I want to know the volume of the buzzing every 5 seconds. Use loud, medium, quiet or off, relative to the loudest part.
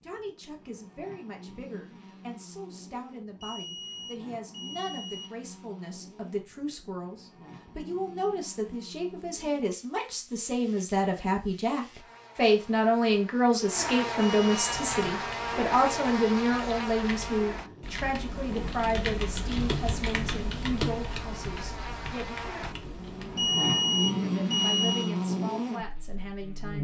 quiet, quiet, medium, loud, loud, loud.